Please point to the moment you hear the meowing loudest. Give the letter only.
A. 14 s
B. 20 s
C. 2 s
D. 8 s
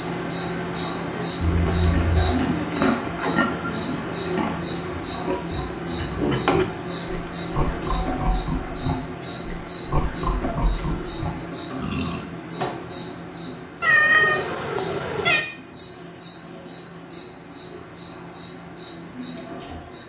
A.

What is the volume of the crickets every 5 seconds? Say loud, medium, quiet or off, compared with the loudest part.
loud, loud, medium, medium.